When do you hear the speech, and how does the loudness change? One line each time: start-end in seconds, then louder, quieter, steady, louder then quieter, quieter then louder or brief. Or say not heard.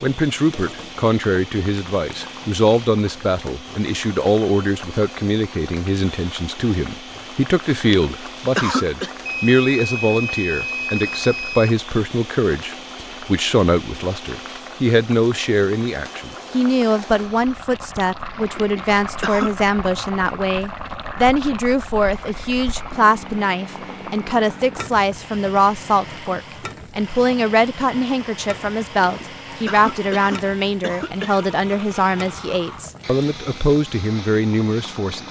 0.0-35.2 steady.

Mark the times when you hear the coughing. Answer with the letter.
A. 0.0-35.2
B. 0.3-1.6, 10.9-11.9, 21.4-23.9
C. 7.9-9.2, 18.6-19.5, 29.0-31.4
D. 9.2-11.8
C.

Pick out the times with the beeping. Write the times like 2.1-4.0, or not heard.
9.2-11.8.